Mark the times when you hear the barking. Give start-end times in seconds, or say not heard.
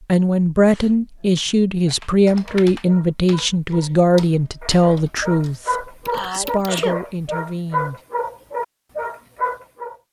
1.2-9.9.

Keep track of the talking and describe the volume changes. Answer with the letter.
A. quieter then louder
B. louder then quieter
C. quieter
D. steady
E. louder
C.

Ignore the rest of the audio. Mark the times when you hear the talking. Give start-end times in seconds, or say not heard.
0.1-8.0.